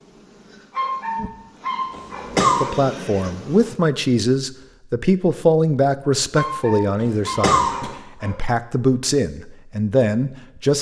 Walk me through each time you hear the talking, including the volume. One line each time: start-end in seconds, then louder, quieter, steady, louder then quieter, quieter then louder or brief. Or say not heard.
2.6-10.7 quieter then louder.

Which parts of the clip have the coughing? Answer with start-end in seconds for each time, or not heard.
1.9-2.7, 7.0-7.9.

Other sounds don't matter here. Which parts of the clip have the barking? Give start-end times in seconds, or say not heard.
0.7-2.7, 6.3-8.3.